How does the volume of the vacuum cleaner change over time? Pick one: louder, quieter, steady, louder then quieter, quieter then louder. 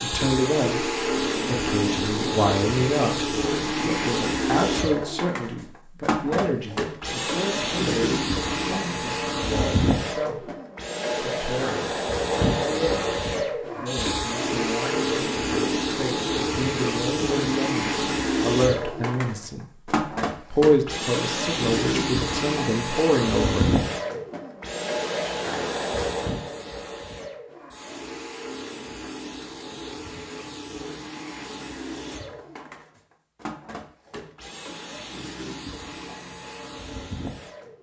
quieter.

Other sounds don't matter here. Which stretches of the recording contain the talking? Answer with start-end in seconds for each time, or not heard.
0.0-10.6, 11.2-11.9, 12.6-19.6, 20.5-23.7.